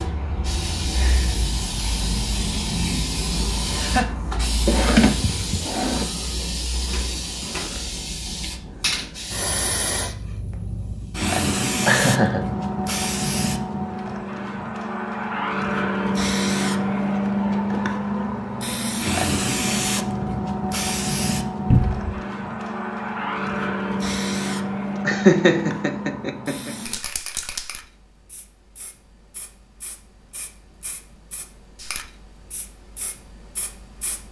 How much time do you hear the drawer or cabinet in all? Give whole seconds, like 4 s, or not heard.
2 s.